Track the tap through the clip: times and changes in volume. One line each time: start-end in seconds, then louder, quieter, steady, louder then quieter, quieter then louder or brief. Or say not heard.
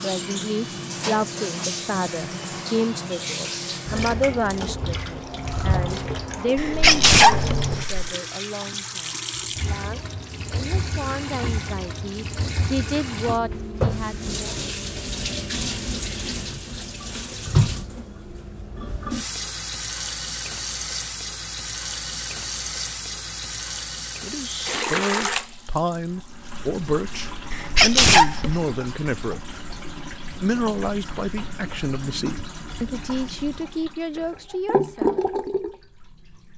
0.0-36.5 steady.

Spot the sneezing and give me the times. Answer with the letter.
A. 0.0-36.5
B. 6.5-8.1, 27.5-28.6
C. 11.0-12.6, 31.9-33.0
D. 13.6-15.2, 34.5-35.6
B.